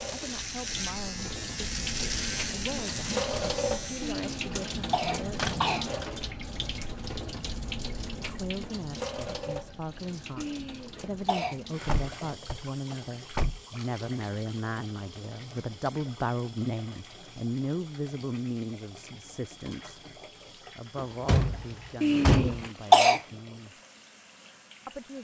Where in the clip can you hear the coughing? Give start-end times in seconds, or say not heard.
4.0-5.8, 10.3-11.6, 22.0-23.2.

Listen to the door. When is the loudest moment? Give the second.
22 s.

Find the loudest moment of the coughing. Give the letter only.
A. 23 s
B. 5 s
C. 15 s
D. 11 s
A.